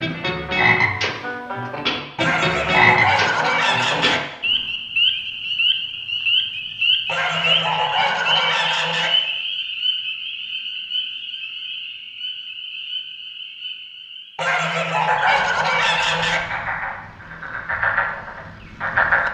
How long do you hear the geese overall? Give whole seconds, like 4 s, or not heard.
6 s.